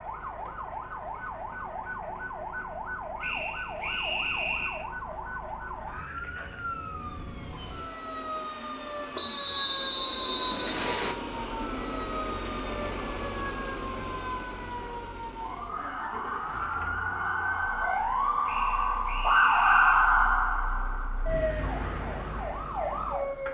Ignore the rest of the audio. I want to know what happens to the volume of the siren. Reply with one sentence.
The loudness of the siren goes up.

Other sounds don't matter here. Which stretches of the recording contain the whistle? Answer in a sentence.
The whistle can be heard from 3.2 to 4.8 s, from 9.2 to 11.2 s and from 18.4 to 20.1 s.